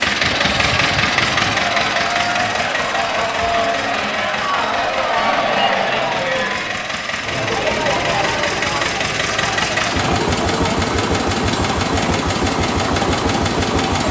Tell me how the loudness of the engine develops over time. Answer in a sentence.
The loudness of the engine goes down, then up.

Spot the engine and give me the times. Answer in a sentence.
The engine can be heard from 0.0 to 14.0 s.